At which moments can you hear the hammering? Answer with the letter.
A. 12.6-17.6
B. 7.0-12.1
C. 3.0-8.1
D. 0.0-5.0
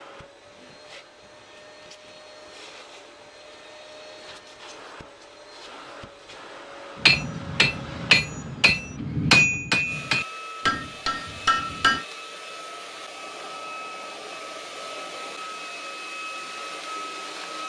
B.